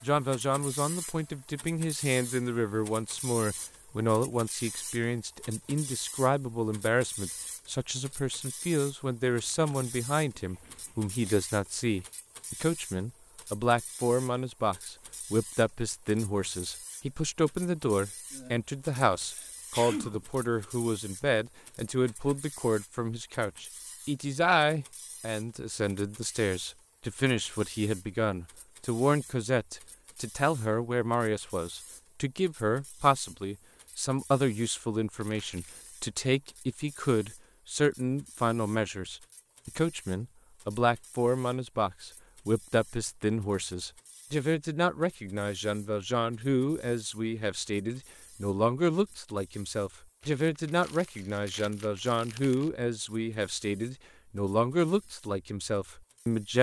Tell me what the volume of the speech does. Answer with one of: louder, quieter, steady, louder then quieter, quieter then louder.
steady.